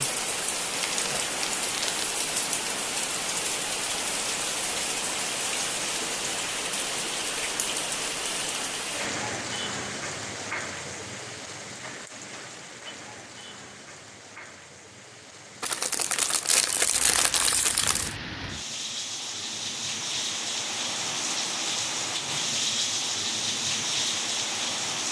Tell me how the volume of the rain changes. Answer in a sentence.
The volume of the rain goes down, then up.